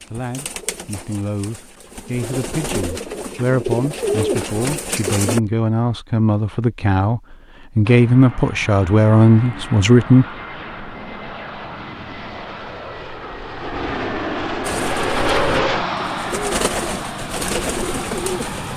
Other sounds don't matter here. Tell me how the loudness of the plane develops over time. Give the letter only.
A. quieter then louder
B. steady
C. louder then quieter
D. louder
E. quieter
C.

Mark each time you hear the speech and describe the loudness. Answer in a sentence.
You can hear the speech from 0.0 to 10.2 s, getting louder.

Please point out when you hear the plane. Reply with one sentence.
You can hear the plane from 7.8 to 18.7 s.